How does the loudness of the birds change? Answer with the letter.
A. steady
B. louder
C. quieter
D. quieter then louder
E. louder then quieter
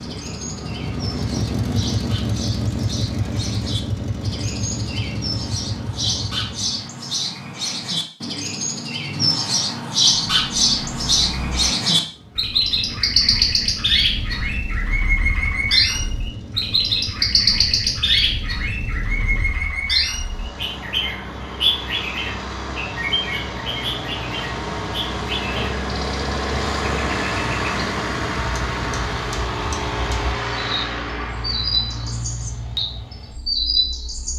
E.